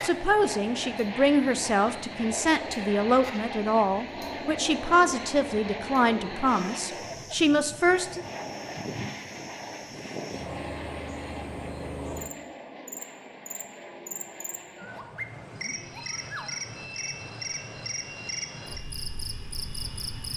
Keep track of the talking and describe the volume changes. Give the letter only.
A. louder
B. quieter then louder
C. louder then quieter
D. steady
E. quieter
D.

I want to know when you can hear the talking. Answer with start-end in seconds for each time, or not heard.
0.0-8.2.